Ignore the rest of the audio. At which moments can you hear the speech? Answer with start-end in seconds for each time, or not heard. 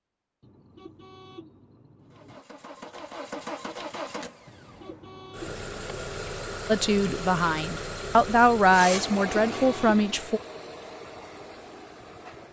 6.7-10.4.